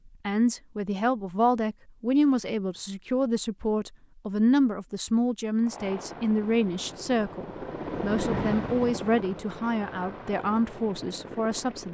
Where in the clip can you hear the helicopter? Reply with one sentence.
The helicopter can be heard from 5.6 to 11.8 s.